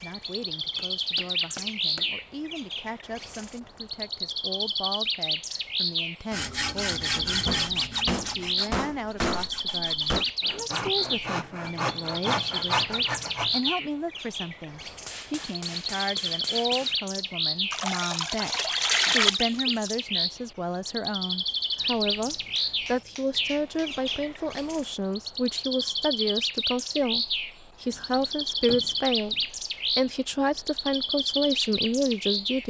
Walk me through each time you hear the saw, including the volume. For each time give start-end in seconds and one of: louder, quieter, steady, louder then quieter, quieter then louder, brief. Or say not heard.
6.3-13.7 quieter then louder.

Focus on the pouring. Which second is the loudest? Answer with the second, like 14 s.
19 s.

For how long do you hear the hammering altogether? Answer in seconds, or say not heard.
10 s.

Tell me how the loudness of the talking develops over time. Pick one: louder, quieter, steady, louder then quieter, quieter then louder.
louder.